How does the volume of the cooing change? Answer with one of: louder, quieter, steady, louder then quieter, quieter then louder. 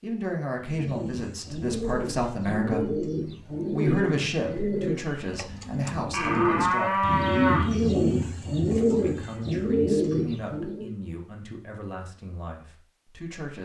louder.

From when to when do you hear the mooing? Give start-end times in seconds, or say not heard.
6.1-7.7.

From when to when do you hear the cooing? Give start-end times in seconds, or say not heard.
0.6-10.9.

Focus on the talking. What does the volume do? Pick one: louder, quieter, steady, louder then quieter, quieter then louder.
quieter.